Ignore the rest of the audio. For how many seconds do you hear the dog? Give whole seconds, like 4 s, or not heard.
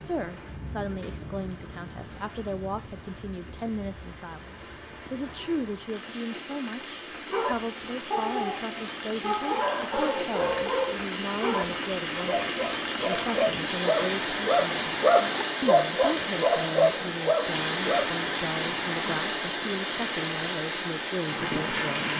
11 s.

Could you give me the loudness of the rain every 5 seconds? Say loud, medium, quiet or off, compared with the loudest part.
quiet, medium, loud, loud, loud.